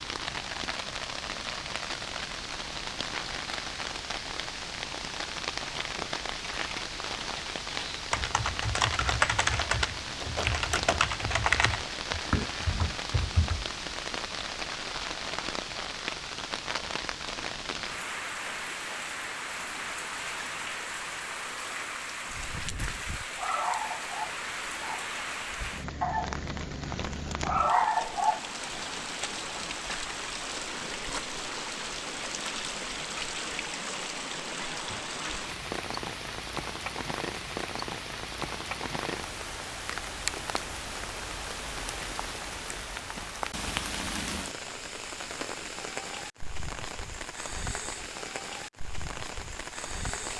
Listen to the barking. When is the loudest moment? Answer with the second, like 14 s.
28 s.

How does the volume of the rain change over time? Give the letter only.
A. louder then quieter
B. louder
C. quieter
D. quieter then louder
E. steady
E.